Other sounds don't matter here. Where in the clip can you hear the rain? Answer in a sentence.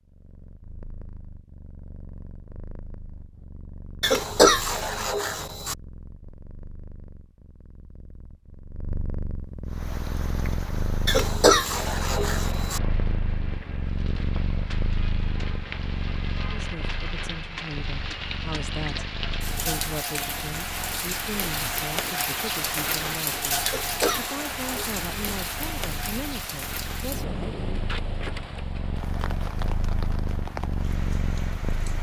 The rain can be heard from 9.7 to 31.9 s.